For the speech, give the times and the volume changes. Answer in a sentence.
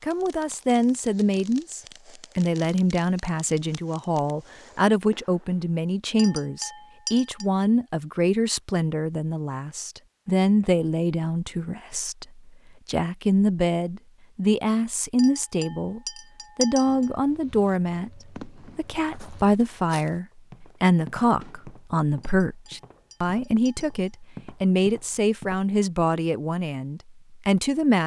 The speech can be heard from 0.0 to 28.0 s, at a steady volume.